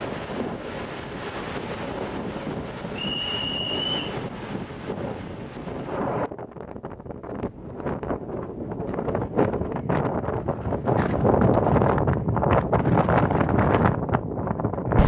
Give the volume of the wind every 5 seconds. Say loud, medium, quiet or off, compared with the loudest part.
medium, medium, loud.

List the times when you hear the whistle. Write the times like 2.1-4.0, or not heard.
3.0-4.2.